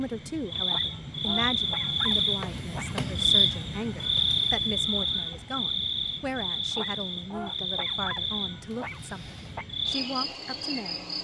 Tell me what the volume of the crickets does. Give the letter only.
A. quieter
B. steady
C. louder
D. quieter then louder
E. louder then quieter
A.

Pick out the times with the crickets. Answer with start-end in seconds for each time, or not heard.
0.0-11.1.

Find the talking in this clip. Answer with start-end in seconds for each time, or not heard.
0.0-11.1.